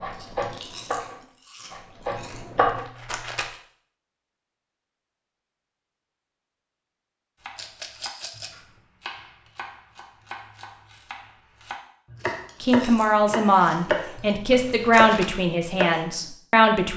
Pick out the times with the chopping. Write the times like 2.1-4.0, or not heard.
0.0-2.9, 7.3-16.1.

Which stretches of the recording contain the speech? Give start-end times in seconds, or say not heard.
12.6-16.9.